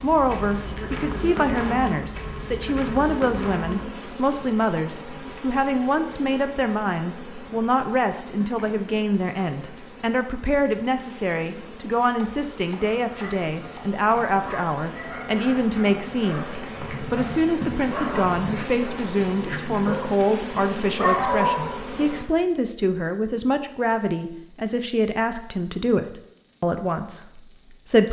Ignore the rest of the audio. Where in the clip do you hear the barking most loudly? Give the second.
21 s.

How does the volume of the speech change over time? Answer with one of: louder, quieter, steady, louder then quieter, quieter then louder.
steady.